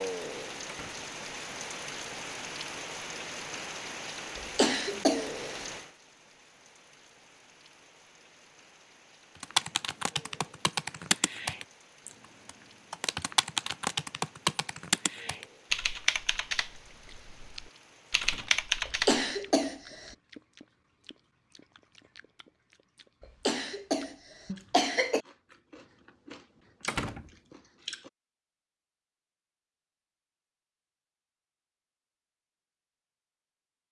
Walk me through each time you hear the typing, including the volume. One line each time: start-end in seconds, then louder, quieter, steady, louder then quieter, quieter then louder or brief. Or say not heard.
9.4-19.2 steady.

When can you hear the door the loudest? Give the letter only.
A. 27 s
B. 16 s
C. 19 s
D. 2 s
A.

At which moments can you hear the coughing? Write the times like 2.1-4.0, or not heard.
4.3-5.5, 18.9-20.1, 23.4-25.2.